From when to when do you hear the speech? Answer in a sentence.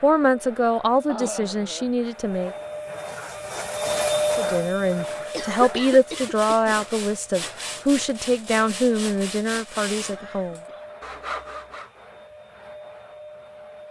The speech can be heard from 0.0 to 2.5 s and from 4.3 to 10.6 s.